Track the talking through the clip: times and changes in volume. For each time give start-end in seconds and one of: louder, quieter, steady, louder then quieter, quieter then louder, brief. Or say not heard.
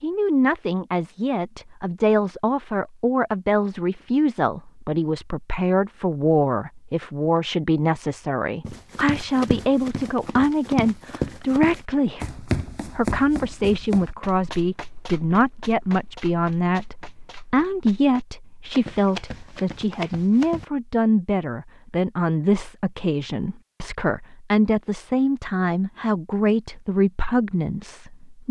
0.0-28.4 steady.